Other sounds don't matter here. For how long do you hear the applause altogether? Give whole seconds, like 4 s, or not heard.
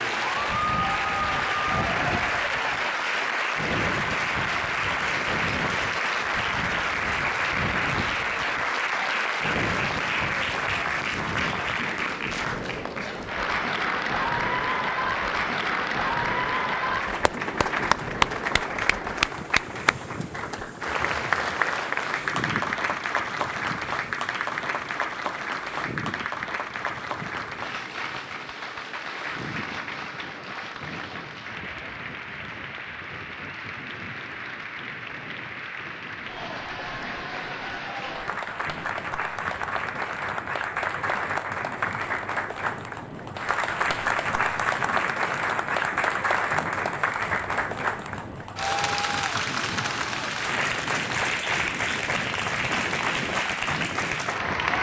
55 s.